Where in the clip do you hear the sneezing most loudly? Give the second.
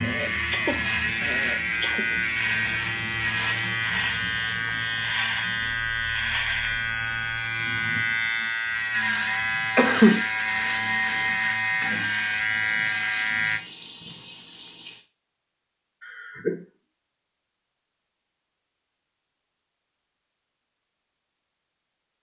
10 s.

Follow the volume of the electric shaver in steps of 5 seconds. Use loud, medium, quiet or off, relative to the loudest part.
loud, loud, loud, off, off.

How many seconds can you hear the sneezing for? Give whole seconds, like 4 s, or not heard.
3 s.